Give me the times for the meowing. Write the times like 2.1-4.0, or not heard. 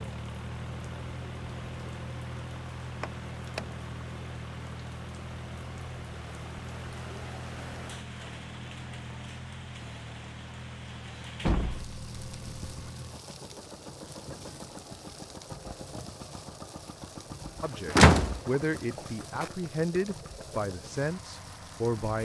not heard.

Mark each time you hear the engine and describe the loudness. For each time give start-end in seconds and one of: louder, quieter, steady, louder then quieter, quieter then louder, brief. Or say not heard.
0.0-22.2 quieter.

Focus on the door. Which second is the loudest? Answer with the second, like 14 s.
18 s.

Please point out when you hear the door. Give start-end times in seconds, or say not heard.
3.0-3.6, 11.4-12.9, 17.9-19.5.